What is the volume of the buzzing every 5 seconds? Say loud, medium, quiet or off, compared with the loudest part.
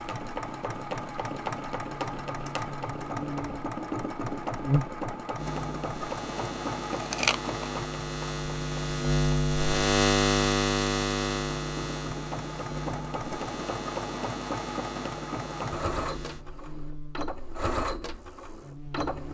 medium, loud, loud, quiet.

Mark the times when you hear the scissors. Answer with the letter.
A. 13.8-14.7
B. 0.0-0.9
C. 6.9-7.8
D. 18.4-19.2
C.